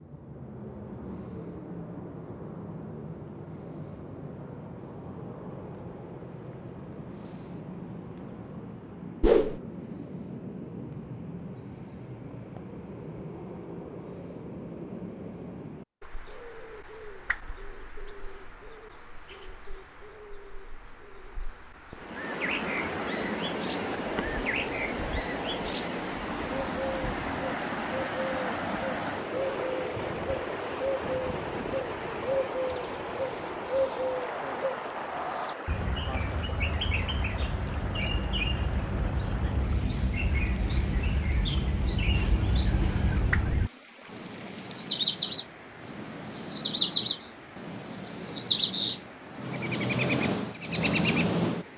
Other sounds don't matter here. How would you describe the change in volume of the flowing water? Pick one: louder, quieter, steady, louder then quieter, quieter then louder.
quieter.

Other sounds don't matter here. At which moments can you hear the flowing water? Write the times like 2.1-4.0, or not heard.
21.9-51.7.